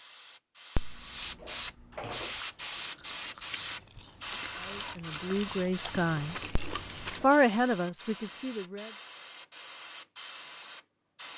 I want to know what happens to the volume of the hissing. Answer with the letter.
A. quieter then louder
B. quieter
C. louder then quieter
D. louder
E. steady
B.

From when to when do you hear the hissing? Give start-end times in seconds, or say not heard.
0.0-11.3.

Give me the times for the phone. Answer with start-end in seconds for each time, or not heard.
0.8-2.3, 6.5-7.2.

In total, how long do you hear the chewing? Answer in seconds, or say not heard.
5 s.